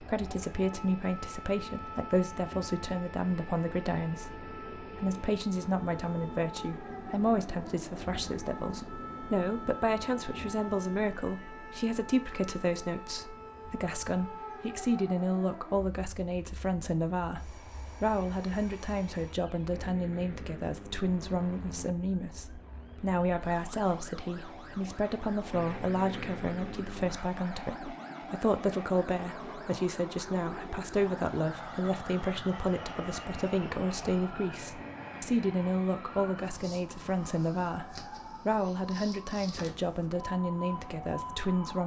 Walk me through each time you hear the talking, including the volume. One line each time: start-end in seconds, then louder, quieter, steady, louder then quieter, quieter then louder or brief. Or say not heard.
0.0-41.8 steady.